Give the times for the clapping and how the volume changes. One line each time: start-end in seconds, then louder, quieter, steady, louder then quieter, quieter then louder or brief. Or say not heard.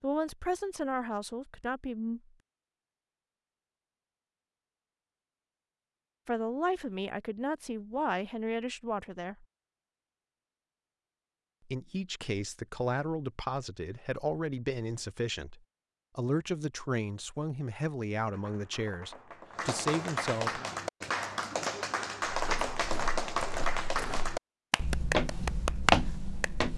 18.2-26.6 louder.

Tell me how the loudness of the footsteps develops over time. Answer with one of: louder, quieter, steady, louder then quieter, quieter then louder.
louder.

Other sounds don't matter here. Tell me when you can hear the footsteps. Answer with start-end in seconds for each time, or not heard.
22.2-26.7.